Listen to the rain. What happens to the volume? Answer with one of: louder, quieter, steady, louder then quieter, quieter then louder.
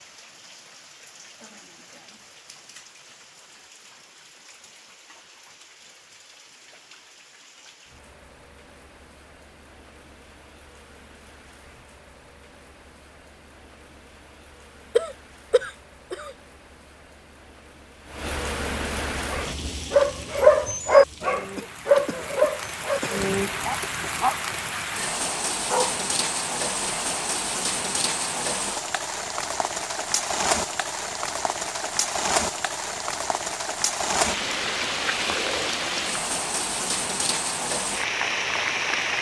louder.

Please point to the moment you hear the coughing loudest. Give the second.
15 s.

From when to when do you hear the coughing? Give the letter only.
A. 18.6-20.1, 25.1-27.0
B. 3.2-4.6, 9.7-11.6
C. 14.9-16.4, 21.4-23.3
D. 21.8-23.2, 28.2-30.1
C.